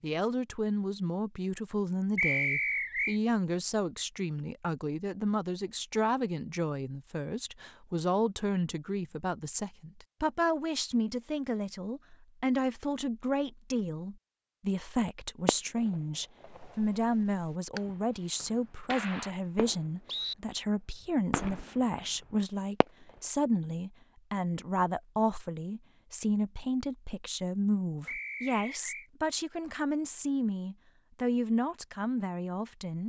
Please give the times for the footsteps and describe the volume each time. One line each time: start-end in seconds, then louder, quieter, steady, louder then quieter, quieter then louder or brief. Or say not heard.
not heard.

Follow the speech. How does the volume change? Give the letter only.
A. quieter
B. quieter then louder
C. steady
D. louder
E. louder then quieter
C.